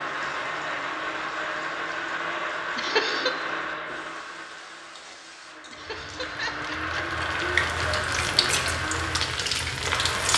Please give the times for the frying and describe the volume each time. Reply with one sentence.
You can hear the frying from 0.0 to 10.3 s, getting louder.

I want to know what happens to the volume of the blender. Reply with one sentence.
The volume of the blender goes down, then up.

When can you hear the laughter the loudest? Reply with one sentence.
The loudest moment of the laughter is at 3 seconds.